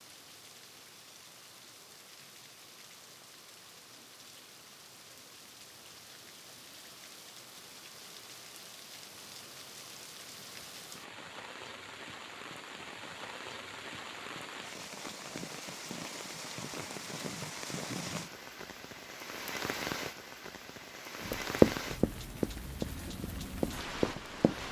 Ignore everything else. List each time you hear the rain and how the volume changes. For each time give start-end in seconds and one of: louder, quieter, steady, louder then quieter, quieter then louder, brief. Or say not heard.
0.0-24.6 louder.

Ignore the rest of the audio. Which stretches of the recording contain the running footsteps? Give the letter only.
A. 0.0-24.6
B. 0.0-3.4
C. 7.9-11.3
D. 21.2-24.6
D.